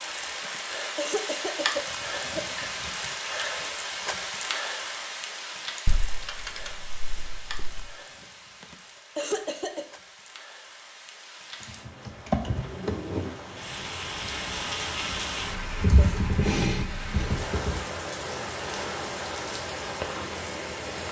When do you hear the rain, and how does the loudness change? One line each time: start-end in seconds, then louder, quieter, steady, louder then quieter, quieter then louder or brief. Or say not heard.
0.0-21.0 quieter then louder.